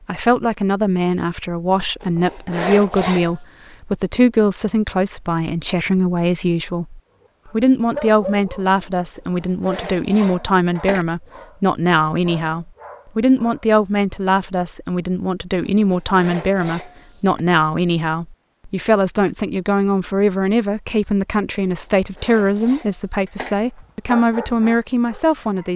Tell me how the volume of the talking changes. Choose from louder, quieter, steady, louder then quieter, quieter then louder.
steady.